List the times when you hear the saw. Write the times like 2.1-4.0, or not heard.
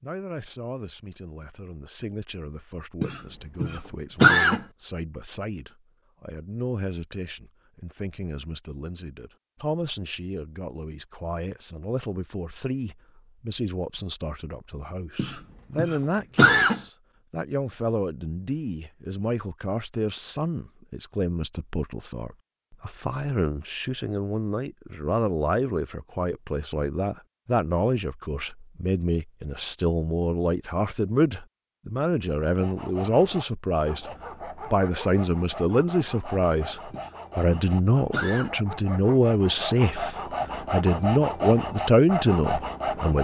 32.4-43.2.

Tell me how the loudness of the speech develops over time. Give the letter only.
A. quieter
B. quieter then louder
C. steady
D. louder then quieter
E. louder
E.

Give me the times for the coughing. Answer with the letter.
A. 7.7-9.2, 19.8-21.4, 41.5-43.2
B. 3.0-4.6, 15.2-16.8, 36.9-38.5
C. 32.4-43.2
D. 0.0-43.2
B.